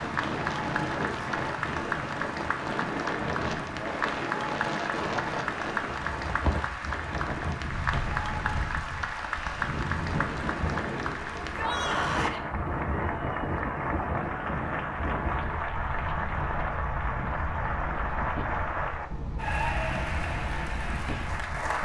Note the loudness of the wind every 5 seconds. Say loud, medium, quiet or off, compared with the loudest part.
loud, loud, loud, medium, medium.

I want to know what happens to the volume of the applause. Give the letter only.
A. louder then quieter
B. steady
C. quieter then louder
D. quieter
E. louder
B.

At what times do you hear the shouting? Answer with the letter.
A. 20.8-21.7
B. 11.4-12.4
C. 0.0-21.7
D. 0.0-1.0
B.